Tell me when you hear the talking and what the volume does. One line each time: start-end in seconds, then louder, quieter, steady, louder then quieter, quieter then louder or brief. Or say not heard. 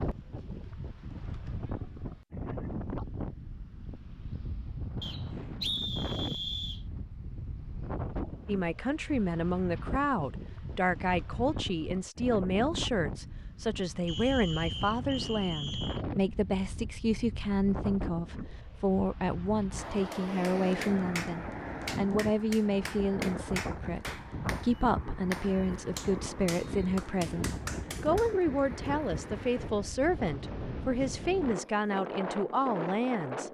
8.4-33.4 steady.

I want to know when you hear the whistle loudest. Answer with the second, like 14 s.
6 s.